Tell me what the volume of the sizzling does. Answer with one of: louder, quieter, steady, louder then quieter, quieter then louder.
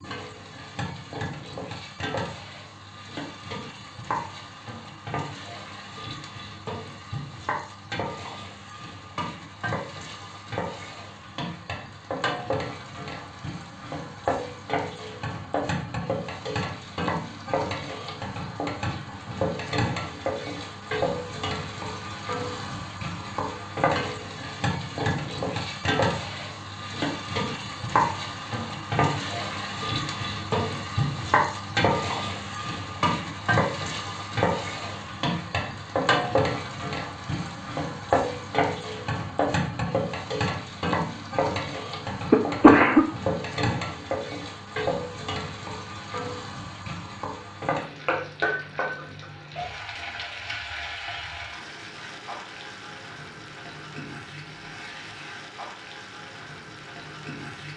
louder then quieter.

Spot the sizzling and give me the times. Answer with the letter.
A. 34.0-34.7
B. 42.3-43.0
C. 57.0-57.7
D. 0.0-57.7
D.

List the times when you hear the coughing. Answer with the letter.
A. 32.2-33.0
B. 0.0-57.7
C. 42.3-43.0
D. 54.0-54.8
C.